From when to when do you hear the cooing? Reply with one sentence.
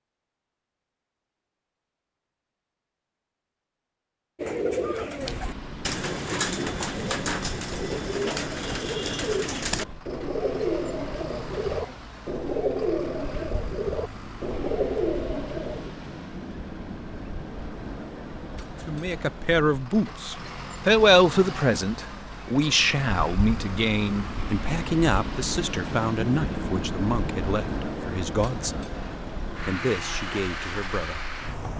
The cooing can be heard from 4.3 to 15.9 s.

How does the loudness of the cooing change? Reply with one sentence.
The volume of the cooing stays about the same.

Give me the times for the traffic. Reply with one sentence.
You can hear the traffic from 5.2 to 31.7 s.